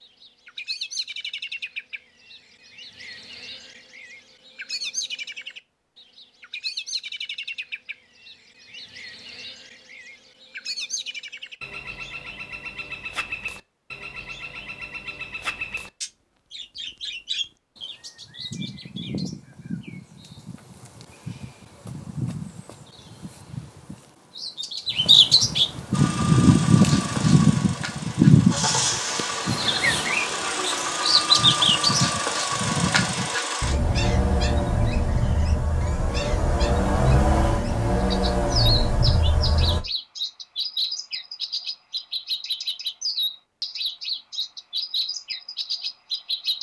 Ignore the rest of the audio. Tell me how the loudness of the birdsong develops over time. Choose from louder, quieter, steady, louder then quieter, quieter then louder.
louder then quieter.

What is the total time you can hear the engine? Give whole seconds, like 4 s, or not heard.
14 s.